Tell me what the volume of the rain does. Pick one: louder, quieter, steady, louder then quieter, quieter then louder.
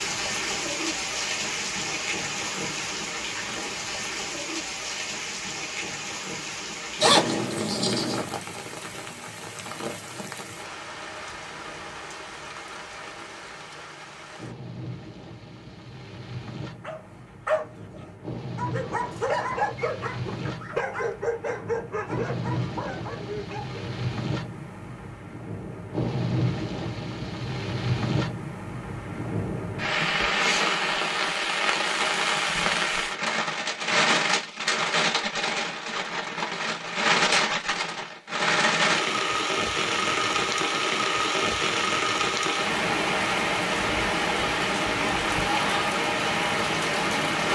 quieter then louder.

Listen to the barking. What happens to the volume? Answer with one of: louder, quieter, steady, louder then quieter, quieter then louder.
quieter.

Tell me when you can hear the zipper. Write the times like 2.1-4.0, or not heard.
7.0-8.2.